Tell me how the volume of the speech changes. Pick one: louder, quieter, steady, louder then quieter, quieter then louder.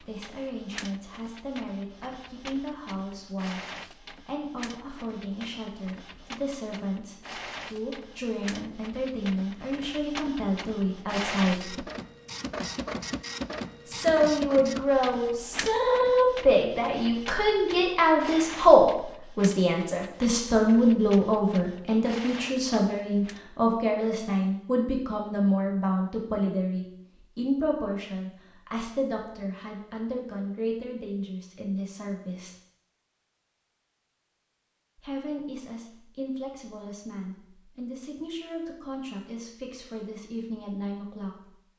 louder then quieter.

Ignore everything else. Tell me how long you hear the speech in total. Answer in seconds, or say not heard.
37 s.